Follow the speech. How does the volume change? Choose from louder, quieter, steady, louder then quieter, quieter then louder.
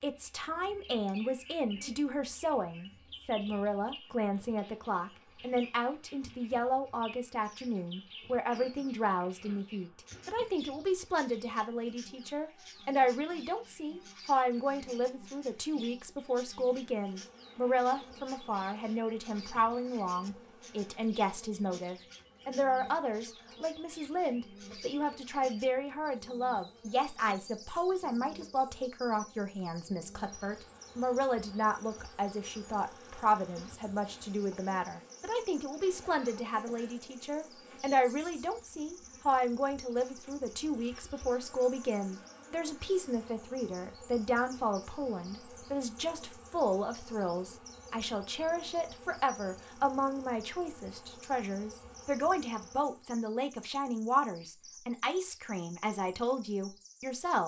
steady.